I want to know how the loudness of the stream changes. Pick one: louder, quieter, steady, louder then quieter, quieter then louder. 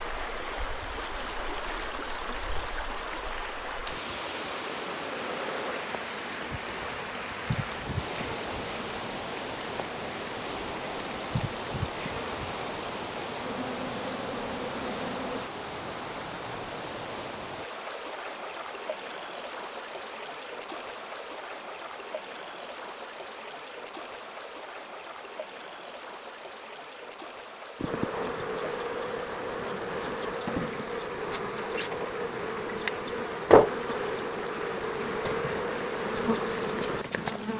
quieter.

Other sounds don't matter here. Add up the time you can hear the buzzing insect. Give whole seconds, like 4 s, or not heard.
25 s.